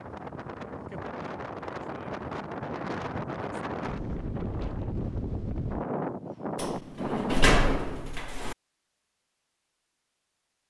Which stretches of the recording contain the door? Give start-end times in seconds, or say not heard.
6.5-8.6.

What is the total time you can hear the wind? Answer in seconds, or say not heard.
8 s.